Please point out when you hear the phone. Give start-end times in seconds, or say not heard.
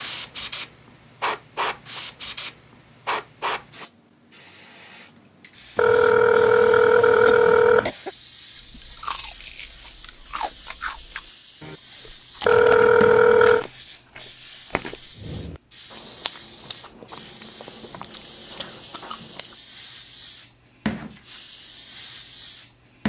5.8-7.9, 12.4-13.7.